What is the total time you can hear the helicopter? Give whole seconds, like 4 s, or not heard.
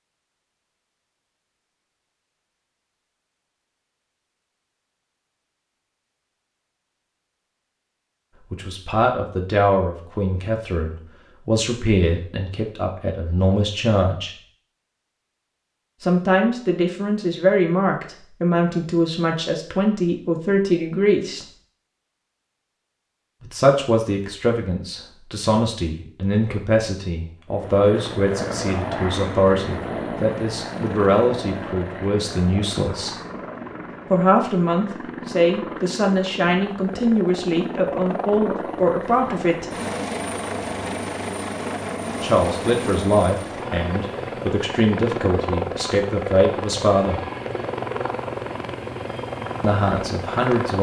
23 s.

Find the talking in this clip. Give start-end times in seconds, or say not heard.
8.5-14.3, 16.0-21.4, 23.4-33.2, 34.1-39.7, 42.2-47.2, 49.6-50.7.